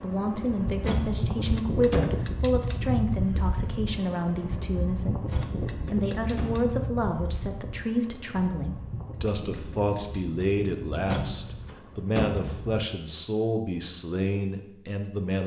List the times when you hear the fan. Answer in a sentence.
You can hear the fan from 0.0 to 12.8 s.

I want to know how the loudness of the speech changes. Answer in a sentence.
The loudness of the speech stays about the same.